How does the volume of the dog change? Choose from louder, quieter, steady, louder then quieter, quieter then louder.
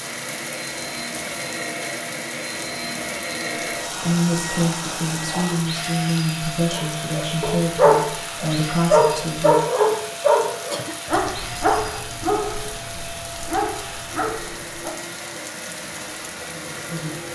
quieter.